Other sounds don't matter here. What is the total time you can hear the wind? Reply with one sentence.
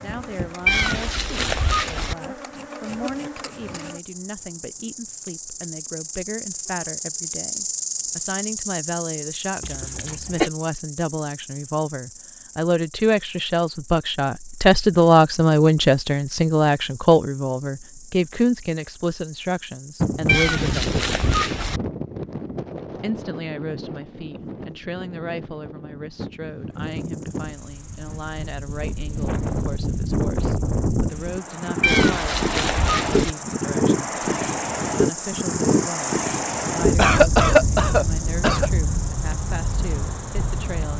The wind can be heard for 21 seconds in total.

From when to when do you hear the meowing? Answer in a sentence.
You can hear the meowing from 0.7 to 2.1 s, from 20.2 to 21.8 s and from 31.8 to 33.4 s.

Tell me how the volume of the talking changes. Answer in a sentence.
The loudness of the talking goes up, then down.